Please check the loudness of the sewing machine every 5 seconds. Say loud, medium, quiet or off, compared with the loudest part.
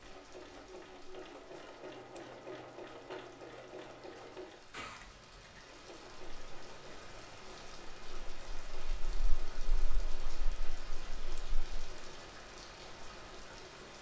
loud, medium, medium.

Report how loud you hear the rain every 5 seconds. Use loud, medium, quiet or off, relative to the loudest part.
medium, loud, loud.